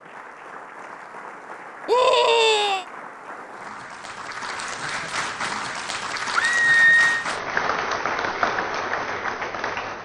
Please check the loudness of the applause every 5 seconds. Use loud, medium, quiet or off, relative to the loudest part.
medium, loud.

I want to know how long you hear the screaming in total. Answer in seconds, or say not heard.
2 s.